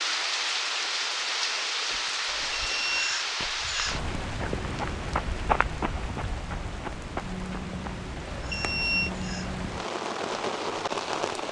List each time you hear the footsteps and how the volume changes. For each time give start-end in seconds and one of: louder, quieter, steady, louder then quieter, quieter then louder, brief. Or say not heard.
1.9-8.1 louder then quieter.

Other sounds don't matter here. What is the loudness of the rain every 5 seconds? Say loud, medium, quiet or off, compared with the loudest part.
loud, medium, loud.